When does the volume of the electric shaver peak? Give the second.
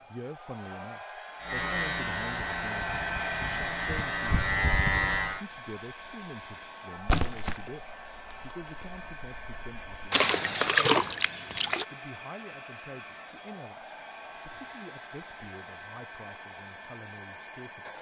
5 s.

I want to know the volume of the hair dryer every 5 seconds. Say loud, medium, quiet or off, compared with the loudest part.
loud, medium, medium, medium.